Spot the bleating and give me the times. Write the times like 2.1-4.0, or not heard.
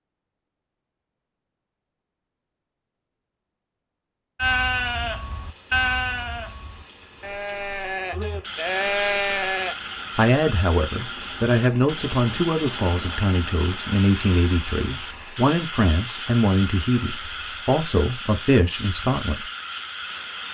4.3-9.8.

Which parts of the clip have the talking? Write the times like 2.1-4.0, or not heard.
10.2-19.4.